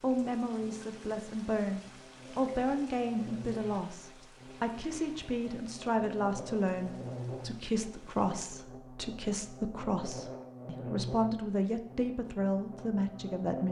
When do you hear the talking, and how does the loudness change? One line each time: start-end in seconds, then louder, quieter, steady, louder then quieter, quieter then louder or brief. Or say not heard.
0.0-13.6 steady.